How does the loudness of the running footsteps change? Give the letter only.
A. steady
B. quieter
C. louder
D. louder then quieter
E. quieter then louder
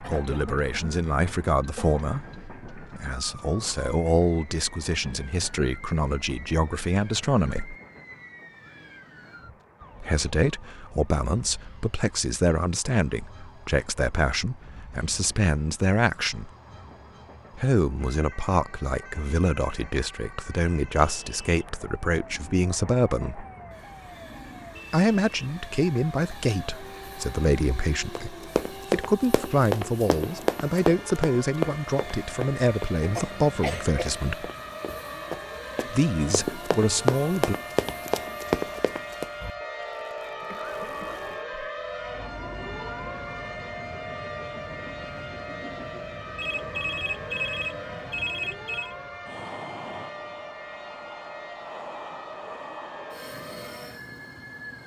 E.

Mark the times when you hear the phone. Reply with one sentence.
The phone can be heard from 46.4 to 49.0 s.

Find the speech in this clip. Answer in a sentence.
You can hear the speech from 0.0 to 7.8 s, from 10.0 to 16.5 s, from 17.6 to 23.4 s, from 24.9 to 34.5 s and from 35.9 to 37.5 s.